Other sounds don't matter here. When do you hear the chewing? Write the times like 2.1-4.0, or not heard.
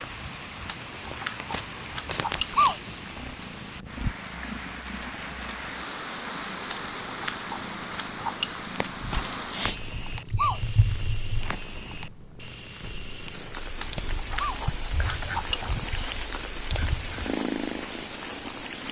0.7-3.0, 6.7-8.7, 13.8-15.8.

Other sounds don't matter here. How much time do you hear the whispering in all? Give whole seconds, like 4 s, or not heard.
3 s.